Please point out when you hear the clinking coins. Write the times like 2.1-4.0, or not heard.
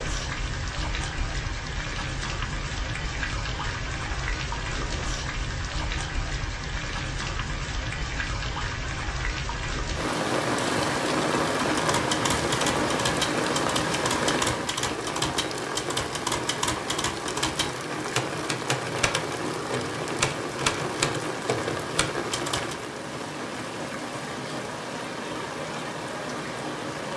not heard.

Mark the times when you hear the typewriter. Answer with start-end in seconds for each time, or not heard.
11.8-22.9.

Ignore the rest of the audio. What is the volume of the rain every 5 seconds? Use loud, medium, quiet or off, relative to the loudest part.
medium, medium, loud, medium, medium, medium.